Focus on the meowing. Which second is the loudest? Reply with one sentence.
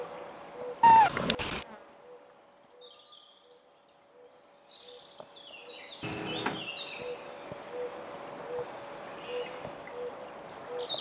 The loudest moment of the meowing is at 1 second.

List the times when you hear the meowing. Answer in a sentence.
You can hear the meowing from 0.8 to 1.6 s and from 6.0 to 6.7 s.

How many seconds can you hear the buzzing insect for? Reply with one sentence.
You can hear the buzzing insect for 11 seconds altogether.